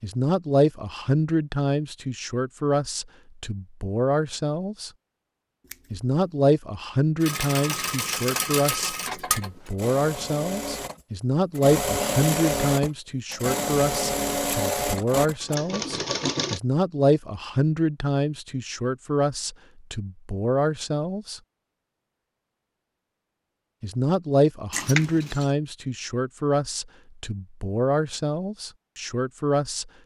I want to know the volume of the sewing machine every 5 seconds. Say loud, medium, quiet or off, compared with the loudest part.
off, loud, loud, loud, off, off.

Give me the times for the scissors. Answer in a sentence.
You can hear the scissors from 5.7 to 6.1 s and from 24.7 to 25.5 s.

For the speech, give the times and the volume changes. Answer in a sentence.
You can hear the speech from 0.0 to 4.9 s, getting quieter then louder; from 5.9 to 21.4 s, at a steady volume; and from 23.8 to 29.9 s, getting quieter.